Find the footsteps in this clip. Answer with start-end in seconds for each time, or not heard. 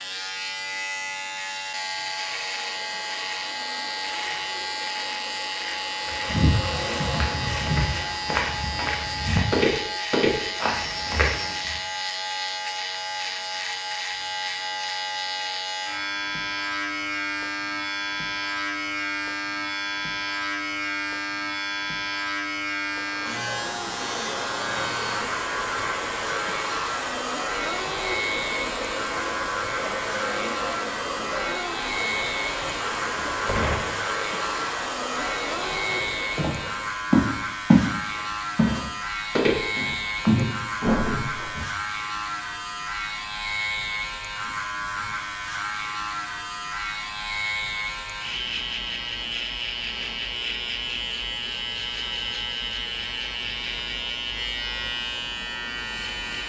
6.0-11.8, 35.9-37.9, 38.5-41.6.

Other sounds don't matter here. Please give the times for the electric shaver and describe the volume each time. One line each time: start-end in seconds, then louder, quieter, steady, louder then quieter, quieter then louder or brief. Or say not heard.
0.0-56.4 steady.